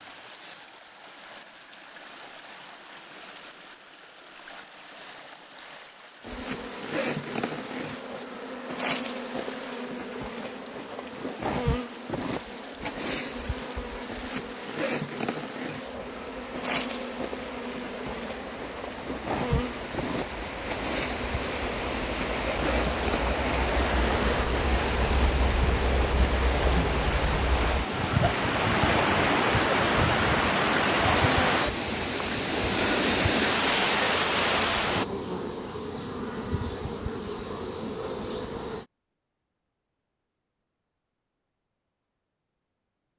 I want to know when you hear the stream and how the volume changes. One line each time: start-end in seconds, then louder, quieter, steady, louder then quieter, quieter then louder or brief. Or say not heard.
0.0-35.0 louder.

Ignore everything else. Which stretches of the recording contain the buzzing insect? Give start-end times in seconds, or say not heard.
6.2-38.9.